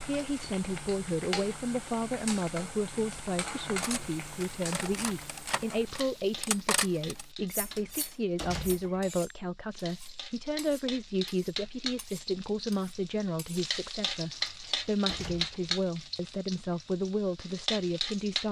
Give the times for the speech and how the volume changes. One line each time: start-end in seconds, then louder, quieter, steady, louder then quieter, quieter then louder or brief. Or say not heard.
0.0-18.4 steady.